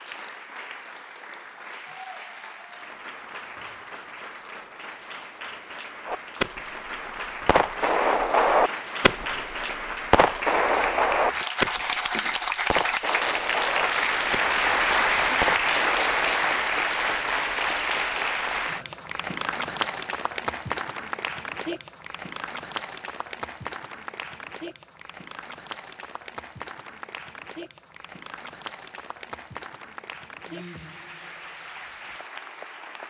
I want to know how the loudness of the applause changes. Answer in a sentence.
The volume of the applause goes up, then down.